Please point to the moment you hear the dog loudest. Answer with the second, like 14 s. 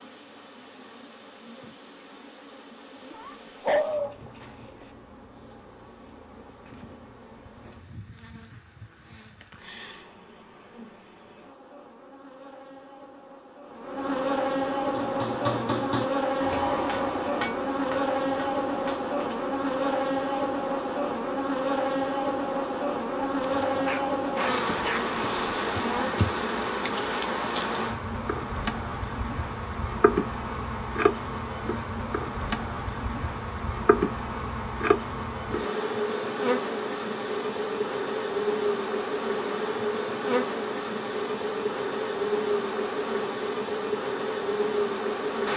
4 s.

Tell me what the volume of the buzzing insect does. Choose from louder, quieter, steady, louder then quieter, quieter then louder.
louder.